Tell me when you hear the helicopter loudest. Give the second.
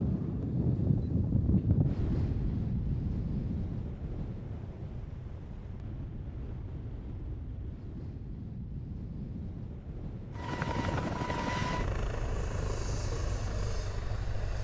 11 s.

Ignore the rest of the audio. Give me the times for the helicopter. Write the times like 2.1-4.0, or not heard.
10.3-14.5.